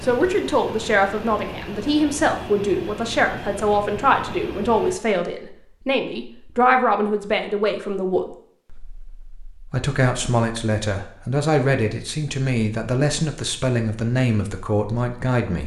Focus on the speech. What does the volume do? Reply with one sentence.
The volume of the speech stays about the same.